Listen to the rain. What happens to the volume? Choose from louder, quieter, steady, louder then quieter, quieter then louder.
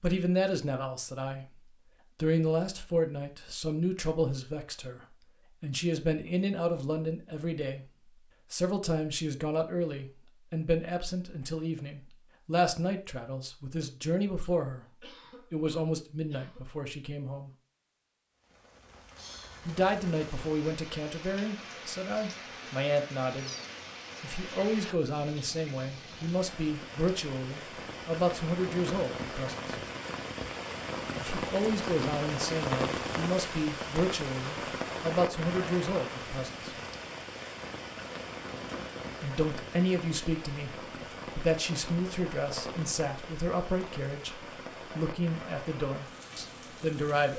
louder then quieter.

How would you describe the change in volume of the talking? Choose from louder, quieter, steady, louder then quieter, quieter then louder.
steady.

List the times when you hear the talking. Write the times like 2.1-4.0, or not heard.
0.0-7.9, 8.5-17.5, 19.6-23.5, 24.2-29.8, 31.1-36.7, 39.2-47.3.